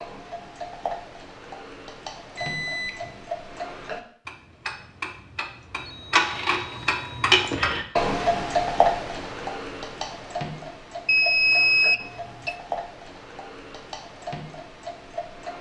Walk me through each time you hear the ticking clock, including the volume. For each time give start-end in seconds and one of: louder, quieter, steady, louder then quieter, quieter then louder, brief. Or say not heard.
0.0-15.5 louder then quieter.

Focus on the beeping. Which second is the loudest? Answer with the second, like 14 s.
12 s.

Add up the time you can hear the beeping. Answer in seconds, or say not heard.
4 s.